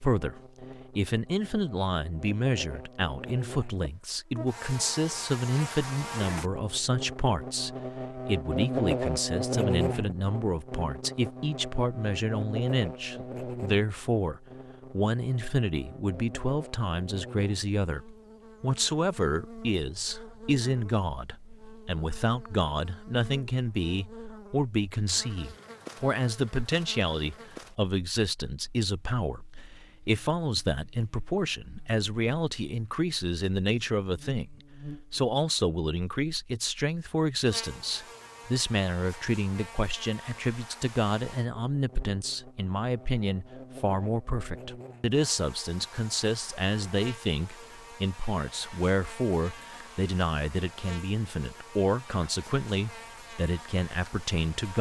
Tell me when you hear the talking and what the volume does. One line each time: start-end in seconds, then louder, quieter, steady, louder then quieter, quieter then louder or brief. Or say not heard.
0.0-54.7 steady.